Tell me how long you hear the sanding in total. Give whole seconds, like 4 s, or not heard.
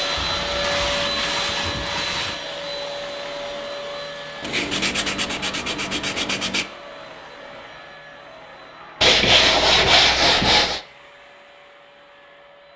6 s.